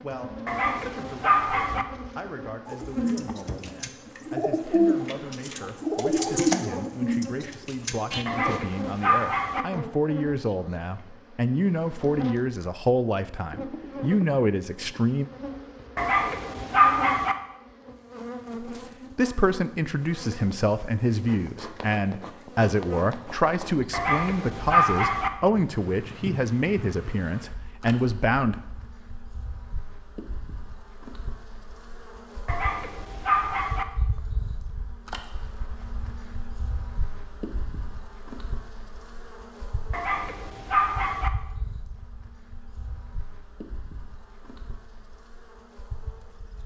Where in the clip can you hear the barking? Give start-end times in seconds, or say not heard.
0.5-1.9, 8.2-9.7, 15.9-17.4, 23.9-25.3, 32.5-33.9, 39.9-41.3.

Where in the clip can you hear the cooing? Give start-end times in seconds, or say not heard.
2.6-8.6.